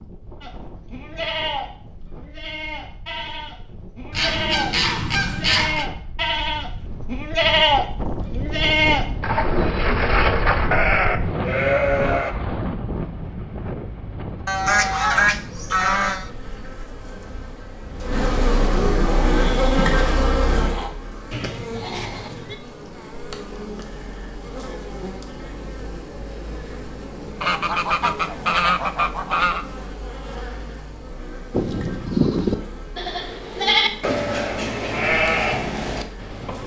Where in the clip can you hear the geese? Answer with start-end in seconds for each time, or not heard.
4.1-5.8, 14.4-16.3, 27.4-29.6.